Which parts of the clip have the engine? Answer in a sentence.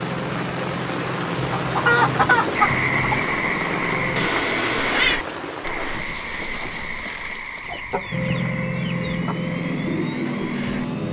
The engine can be heard from 0.0 to 4.3 s and from 8.1 to 11.0 s.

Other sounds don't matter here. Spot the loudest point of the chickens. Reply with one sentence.
The loudest moment of the chickens is at 2 seconds.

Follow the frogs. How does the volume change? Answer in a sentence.
The volume of the frogs goes down.